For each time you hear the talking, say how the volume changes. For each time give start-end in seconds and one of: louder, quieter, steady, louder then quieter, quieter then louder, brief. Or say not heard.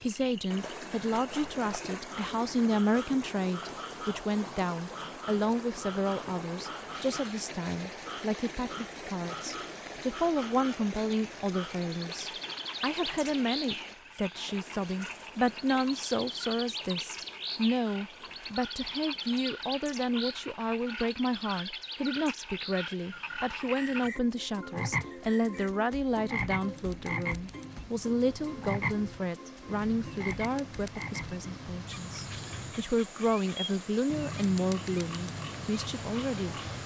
0.0-36.5 steady.